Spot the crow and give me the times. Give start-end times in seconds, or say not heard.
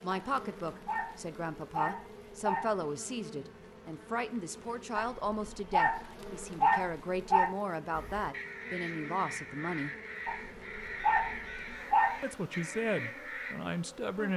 7.9-13.6.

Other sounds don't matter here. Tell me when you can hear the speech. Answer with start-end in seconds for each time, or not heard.
0.0-9.9, 12.2-14.3.